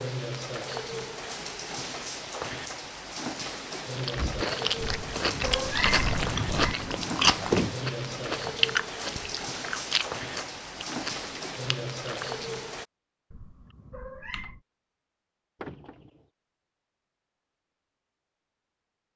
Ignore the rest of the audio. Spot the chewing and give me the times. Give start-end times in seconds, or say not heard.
4.0-12.5.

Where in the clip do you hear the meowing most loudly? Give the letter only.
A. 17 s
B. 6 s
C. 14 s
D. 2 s
B.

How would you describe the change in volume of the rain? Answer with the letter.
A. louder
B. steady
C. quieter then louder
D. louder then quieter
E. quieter
B.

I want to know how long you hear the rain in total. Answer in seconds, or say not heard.
13 s.